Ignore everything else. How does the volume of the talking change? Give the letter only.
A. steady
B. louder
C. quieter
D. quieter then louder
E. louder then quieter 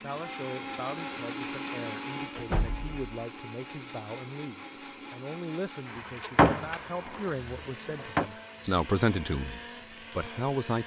B.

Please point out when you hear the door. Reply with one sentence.
You can hear the door from 2.4 to 3.0 s and from 6.3 to 6.8 s.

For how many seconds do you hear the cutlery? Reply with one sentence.
You can't hear the cutlery here.